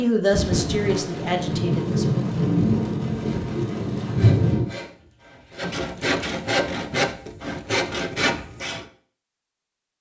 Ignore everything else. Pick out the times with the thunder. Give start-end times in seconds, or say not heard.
0.3-4.7.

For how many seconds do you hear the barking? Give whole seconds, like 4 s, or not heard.
not heard.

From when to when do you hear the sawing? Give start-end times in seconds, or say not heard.
3.0-8.8.